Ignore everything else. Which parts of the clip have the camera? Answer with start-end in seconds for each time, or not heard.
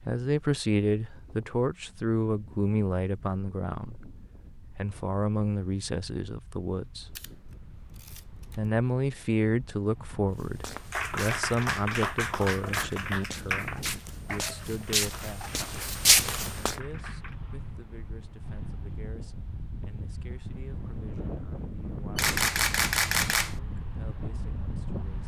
7.2-8.6, 22.1-23.6.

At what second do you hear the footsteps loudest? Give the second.
16 s.